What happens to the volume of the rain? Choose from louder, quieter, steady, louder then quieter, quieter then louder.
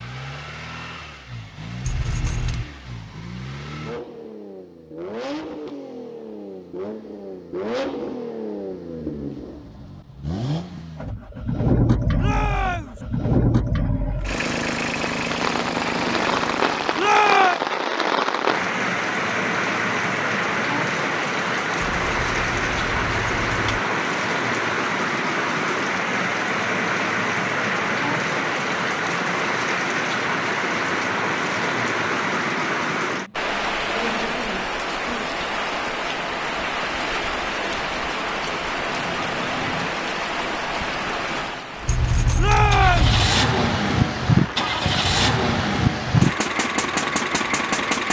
quieter.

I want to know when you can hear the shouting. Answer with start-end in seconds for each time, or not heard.
12.2-13.0, 16.9-17.6, 42.4-43.1.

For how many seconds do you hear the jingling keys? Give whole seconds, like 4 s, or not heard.
4 s.